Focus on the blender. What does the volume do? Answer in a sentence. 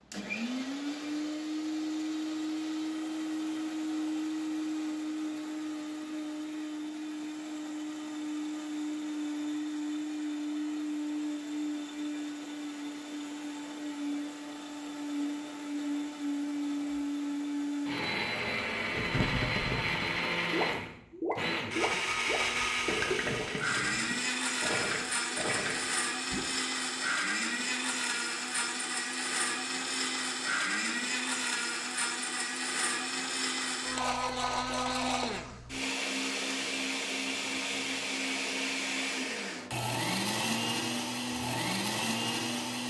The loudness of the blender stays about the same.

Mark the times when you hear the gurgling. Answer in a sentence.
You can hear the gurgling from 18.9 to 26.4 s.